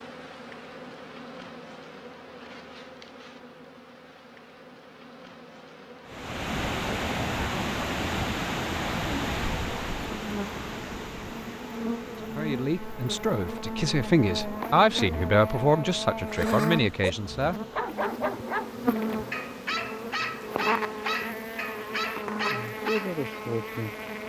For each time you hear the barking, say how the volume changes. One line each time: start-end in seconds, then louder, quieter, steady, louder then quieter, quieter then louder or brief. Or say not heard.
16.2-23.2 steady.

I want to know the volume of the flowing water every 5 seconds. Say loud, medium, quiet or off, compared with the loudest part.
off, loud, medium, quiet, quiet.